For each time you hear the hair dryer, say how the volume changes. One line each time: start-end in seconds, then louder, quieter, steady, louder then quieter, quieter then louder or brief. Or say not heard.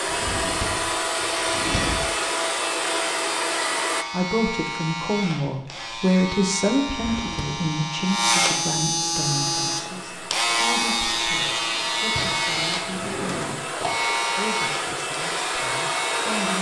0.0-4.0 steady
9.1-16.5 louder.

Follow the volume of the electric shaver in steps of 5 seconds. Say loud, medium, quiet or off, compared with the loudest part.
medium, loud, loud, medium.